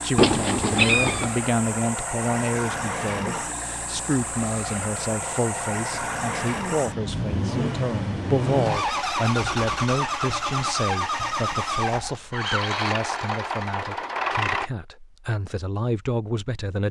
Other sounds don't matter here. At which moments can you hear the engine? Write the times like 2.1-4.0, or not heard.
0.0-14.7.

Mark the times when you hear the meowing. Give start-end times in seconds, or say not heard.
0.1-1.3.